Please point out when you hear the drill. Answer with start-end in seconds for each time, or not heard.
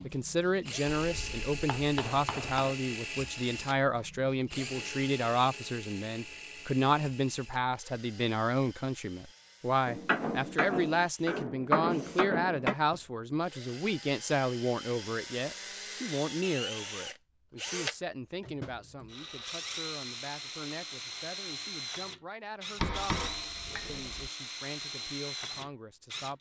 0.0-26.3.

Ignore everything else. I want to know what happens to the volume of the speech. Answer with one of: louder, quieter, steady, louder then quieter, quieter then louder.
quieter.